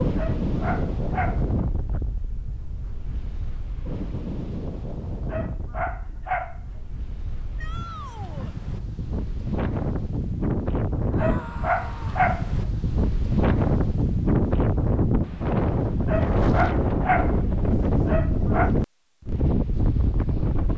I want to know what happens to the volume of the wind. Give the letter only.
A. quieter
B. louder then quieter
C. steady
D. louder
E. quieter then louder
E.